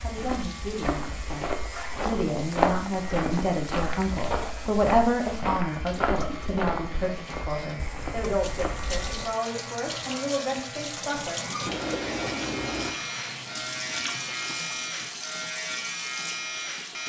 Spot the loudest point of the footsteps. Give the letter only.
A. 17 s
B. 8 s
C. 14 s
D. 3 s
D.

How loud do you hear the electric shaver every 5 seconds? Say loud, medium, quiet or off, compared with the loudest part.
medium, medium, loud, loud.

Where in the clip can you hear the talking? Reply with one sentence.
You can hear the talking from 0.0 to 11.5 s.